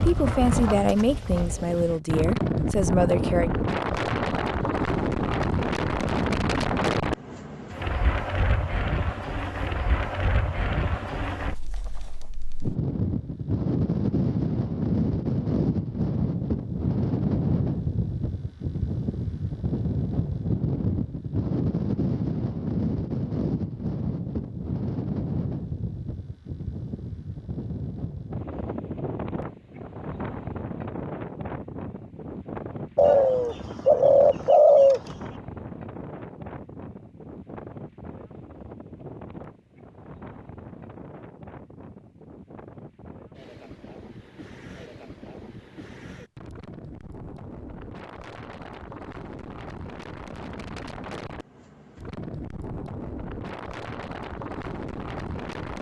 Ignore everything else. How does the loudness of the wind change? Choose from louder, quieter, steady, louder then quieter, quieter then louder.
quieter.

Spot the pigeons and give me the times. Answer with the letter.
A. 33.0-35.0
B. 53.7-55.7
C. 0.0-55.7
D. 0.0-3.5
A.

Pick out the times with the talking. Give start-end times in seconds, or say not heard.
0.0-3.5.